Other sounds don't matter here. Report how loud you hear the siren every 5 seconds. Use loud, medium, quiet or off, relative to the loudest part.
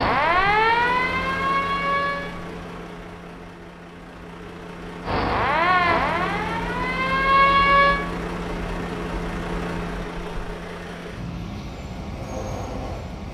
loud, loud, off.